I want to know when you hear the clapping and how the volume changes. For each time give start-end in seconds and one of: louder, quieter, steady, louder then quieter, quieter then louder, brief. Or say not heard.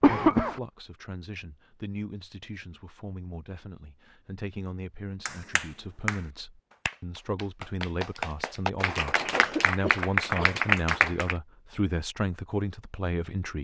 5.2-11.3 quieter then louder.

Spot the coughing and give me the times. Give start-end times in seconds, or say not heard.
0.0-0.6, 9.3-10.6.